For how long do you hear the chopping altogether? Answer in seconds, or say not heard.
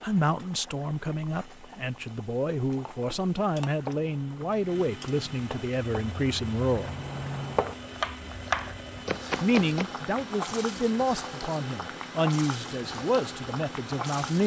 7 s.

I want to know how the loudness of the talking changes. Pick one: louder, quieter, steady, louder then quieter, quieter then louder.
steady.